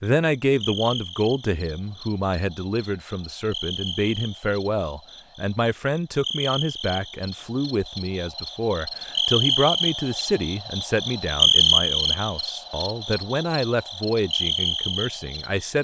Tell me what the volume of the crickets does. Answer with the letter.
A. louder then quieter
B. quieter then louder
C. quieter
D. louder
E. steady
A.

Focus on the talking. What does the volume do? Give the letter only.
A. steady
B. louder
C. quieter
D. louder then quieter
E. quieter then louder
A.